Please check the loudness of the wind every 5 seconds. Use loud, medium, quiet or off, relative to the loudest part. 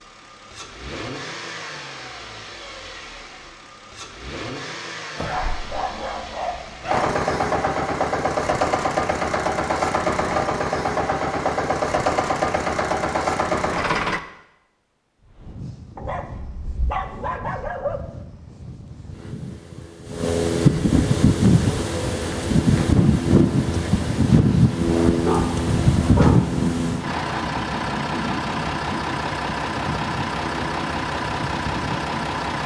off, off, off, quiet, loud, loud, quiet.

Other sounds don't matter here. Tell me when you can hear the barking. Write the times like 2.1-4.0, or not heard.
5.2-7.2, 15.9-18.0, 25.2-26.4.